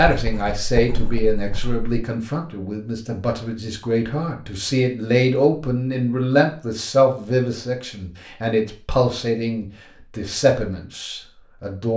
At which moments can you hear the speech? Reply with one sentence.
The speech can be heard from 0.0 to 11.9 s.